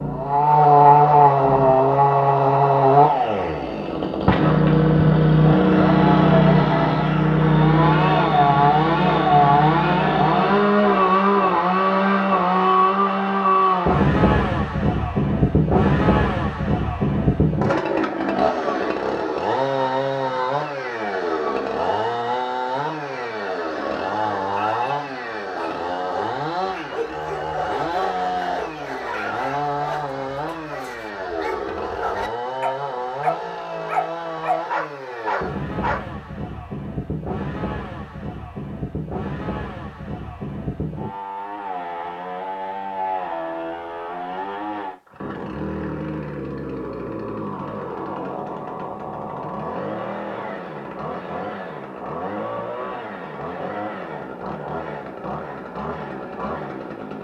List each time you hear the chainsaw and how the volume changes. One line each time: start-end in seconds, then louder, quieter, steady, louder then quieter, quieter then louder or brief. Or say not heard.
0.0-57.1 quieter.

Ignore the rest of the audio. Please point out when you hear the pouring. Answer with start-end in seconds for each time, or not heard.
not heard.